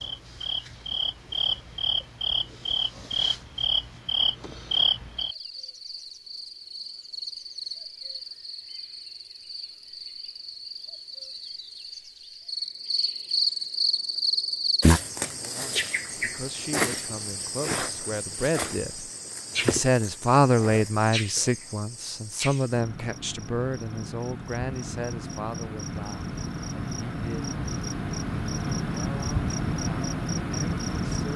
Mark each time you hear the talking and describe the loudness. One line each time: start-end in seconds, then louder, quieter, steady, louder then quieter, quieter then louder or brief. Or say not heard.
15.2-27.6 louder then quieter
28.9-31.3 brief.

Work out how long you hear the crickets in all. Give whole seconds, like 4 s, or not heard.
31 s.